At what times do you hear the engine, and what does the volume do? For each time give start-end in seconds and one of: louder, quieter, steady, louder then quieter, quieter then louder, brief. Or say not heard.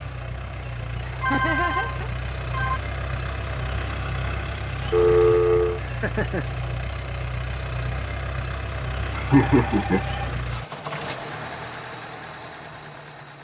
0.0-13.3 steady.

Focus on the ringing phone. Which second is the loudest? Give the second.
5 s.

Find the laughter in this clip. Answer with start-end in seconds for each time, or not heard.
1.0-2.1, 5.8-6.5, 9.2-10.0.